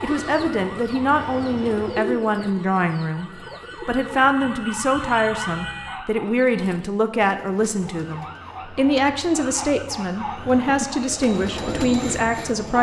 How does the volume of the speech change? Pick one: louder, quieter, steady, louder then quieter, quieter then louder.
steady.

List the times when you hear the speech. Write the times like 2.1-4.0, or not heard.
0.0-12.7.